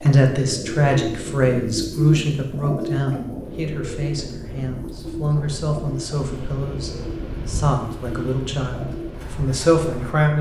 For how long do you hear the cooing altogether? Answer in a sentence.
You can hear the cooing for 10 seconds altogether.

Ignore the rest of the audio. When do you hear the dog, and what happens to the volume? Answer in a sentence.
The dog can't be heard in this clip.